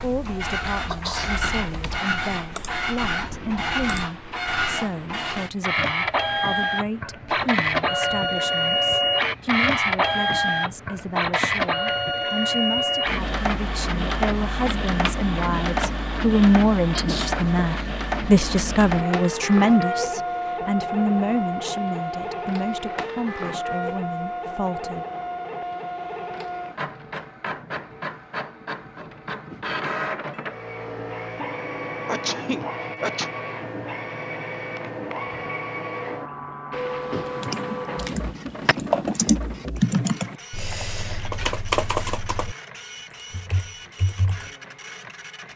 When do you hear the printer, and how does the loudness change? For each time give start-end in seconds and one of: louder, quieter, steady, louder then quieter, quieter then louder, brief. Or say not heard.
0.0-45.5 quieter.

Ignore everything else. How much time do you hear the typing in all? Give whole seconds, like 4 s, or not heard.
11 s.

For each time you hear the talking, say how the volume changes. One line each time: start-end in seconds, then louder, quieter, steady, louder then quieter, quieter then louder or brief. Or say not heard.
0.0-25.1 louder then quieter.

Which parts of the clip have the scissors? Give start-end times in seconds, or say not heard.
36.7-38.8.